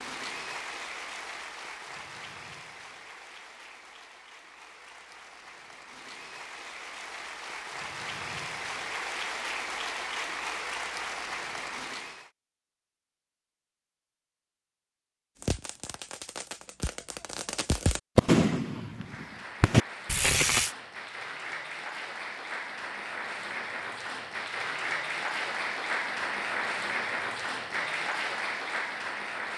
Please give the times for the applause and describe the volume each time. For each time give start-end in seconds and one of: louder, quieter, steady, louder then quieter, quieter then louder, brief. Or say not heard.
0.0-12.3 quieter then louder
18.9-29.5 louder.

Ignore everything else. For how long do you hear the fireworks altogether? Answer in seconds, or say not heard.
5 s.